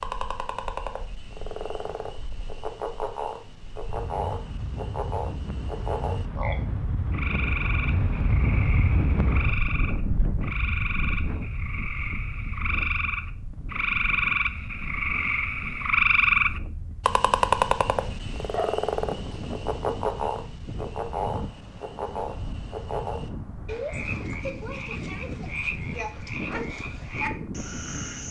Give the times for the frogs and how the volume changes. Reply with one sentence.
The frogs can be heard from 0.0 to 28.2 s, getting louder then quieter.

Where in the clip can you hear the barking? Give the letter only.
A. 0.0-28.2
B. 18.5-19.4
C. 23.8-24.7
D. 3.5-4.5
B.